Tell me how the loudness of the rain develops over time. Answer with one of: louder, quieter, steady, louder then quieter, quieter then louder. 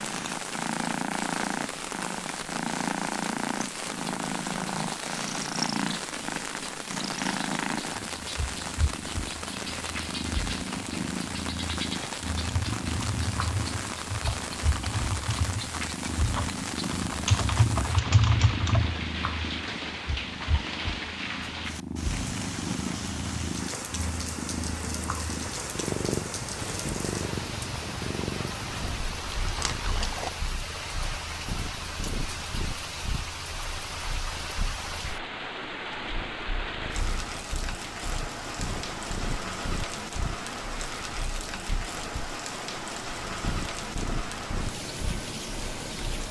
steady.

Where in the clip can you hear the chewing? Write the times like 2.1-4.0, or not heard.
28.8-30.4.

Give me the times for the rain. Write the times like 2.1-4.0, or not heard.
0.0-46.2.